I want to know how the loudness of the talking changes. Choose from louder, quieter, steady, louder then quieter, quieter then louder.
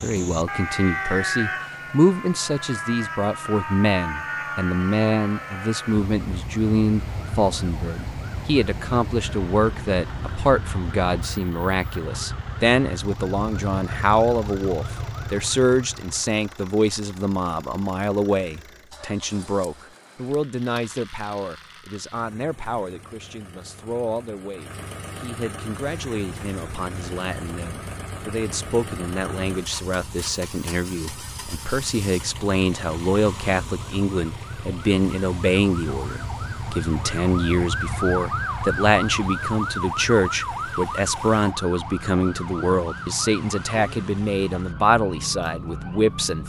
quieter then louder.